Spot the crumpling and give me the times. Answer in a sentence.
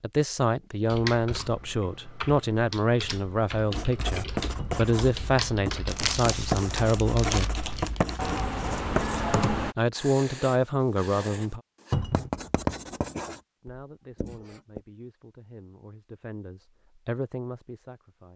You can hear the crumpling from 5.8 to 8.5 s.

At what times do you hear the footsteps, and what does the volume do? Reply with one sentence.
You can't hear the footsteps here.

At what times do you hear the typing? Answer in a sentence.
You can hear the typing from 0.9 to 9.8 s.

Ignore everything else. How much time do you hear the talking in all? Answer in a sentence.
The talking can be heard for 14 seconds in total.